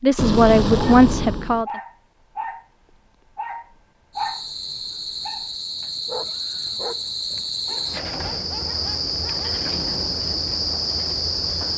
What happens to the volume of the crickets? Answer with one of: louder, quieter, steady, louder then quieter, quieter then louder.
louder.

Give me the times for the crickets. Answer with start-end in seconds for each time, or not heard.
4.1-11.7.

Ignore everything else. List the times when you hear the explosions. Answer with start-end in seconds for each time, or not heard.
0.1-1.6.